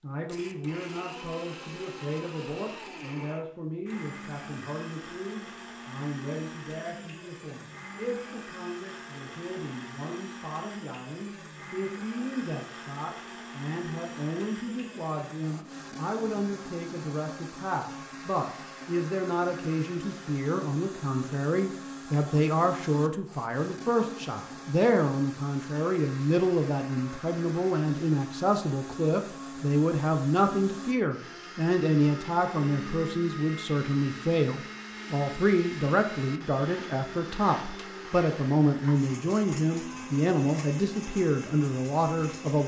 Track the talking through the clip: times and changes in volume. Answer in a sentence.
You can hear the talking from 0.0 to 42.6 s, getting louder.